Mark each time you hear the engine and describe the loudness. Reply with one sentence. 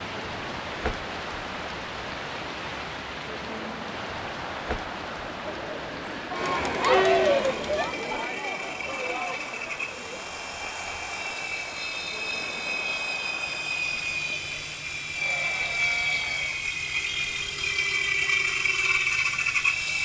You can hear the engine from 6.3 to 20.0 s, getting louder.